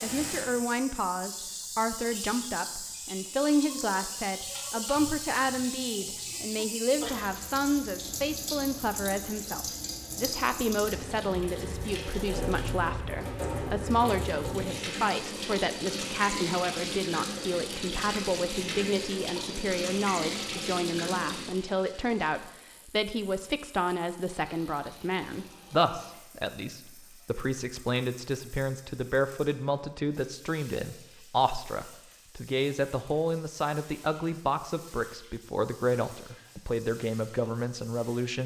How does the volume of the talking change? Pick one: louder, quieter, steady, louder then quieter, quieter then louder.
steady.